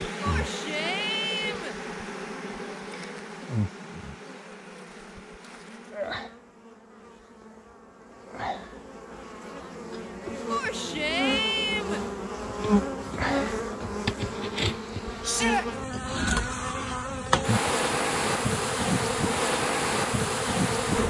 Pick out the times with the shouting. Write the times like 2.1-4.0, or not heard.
0.2-1.8, 10.5-12.0, 15.2-15.7.